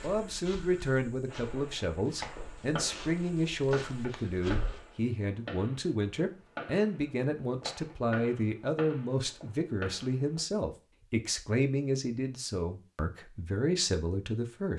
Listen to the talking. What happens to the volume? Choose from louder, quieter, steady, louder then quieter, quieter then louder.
steady.